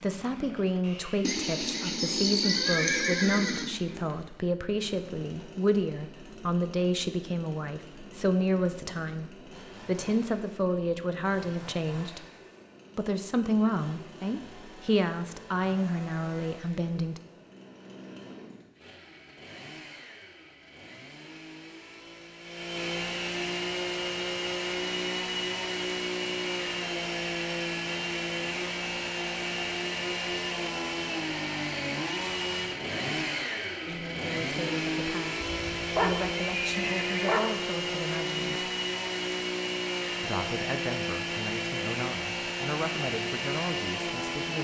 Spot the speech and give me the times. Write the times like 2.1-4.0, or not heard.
0.0-12.2, 12.9-17.2, 33.9-38.7, 40.2-44.5.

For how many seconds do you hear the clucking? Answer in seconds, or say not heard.
not heard.